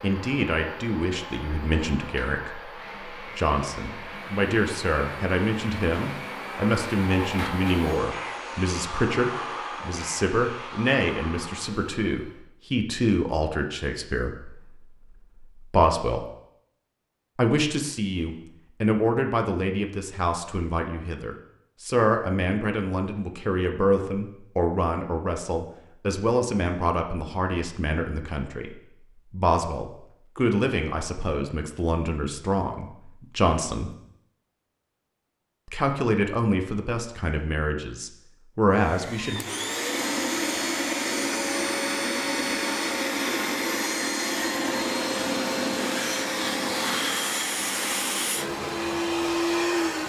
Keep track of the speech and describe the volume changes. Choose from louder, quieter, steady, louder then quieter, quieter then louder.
steady.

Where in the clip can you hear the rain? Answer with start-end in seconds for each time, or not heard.
not heard.